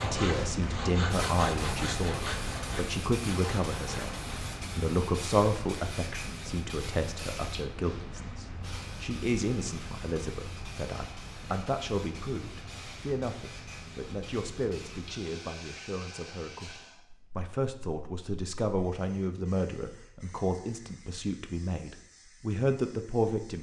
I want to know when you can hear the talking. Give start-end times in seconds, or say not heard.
0.0-23.5.